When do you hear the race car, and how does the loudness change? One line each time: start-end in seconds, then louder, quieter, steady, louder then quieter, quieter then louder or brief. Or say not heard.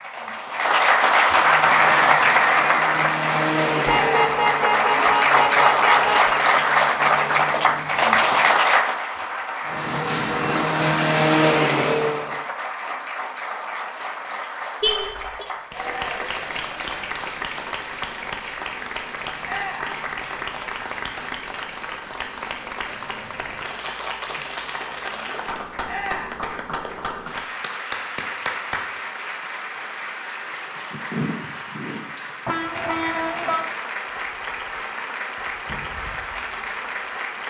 1.4-8.7 louder then quieter
9.7-12.4 brief.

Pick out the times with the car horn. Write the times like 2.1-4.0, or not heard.
3.9-6.3, 14.8-15.4, 32.5-33.7.